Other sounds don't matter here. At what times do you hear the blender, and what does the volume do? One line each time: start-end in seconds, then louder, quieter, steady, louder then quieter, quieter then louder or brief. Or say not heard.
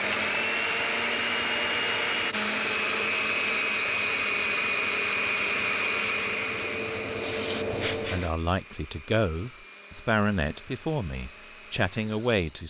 0.0-12.6 quieter.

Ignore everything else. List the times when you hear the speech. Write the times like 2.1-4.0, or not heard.
8.1-12.6.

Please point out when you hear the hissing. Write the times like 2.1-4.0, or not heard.
0.1-8.3.